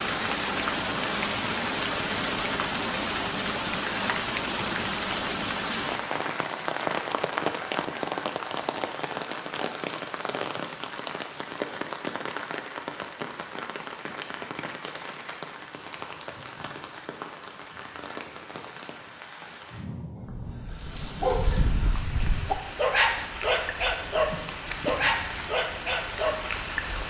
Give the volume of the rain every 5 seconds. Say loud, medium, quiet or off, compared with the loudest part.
loud, loud, medium, quiet, medium, medium.